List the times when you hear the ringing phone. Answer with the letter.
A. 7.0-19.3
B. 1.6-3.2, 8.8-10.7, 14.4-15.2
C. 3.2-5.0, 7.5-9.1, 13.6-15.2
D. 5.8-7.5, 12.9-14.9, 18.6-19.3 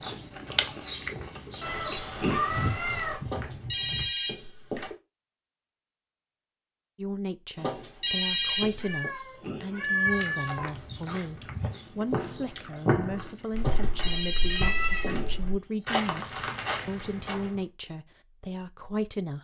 C.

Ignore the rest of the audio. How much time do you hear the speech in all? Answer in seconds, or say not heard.
12 s.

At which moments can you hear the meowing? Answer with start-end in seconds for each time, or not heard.
1.6-3.2, 8.8-10.7, 14.4-15.2.